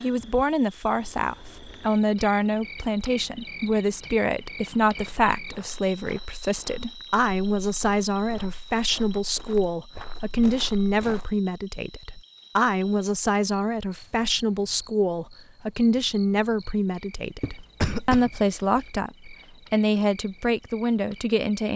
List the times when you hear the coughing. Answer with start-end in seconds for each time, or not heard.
17.4-18.9.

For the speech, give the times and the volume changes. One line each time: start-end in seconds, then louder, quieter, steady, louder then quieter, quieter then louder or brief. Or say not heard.
0.0-21.7 steady.